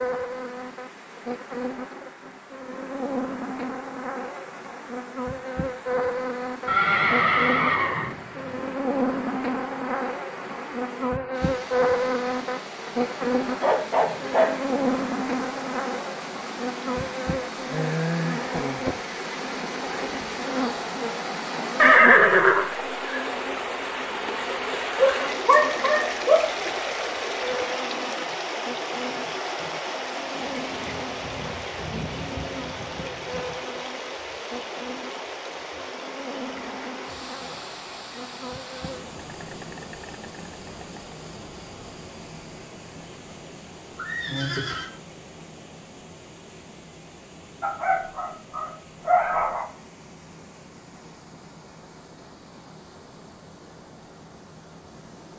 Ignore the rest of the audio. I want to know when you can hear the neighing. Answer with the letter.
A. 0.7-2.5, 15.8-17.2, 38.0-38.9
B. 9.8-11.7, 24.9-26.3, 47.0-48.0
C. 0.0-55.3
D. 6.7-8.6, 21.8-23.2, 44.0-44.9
D.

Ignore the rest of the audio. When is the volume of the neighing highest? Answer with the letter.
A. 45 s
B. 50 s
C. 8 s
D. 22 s
D.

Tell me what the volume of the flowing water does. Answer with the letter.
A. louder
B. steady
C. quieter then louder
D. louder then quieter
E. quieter
D.